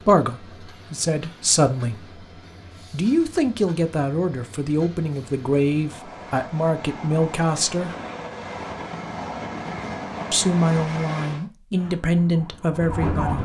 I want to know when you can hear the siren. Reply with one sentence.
You can hear the siren from 11.7 to 13.4 s.